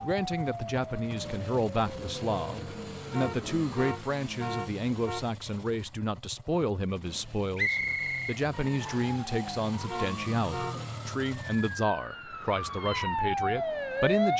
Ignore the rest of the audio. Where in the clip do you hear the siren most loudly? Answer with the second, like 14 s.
14 s.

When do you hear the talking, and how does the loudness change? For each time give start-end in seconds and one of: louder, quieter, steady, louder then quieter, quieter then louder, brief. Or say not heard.
0.0-14.3 steady.